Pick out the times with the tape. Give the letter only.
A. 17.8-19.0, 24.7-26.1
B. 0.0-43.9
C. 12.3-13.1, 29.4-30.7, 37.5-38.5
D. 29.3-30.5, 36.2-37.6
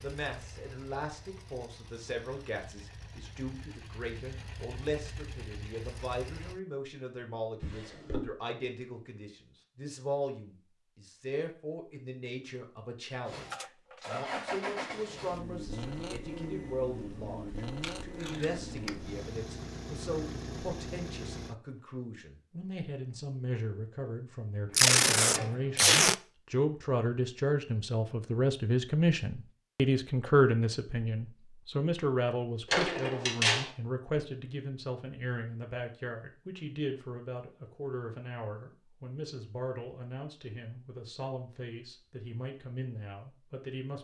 A.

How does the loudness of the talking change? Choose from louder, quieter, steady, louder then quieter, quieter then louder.
louder then quieter.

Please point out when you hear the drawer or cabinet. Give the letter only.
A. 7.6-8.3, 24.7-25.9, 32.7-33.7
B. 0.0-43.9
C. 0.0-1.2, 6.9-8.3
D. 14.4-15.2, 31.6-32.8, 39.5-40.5
A.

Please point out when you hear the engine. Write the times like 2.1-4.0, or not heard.
0.0-6.6, 13.2-21.6.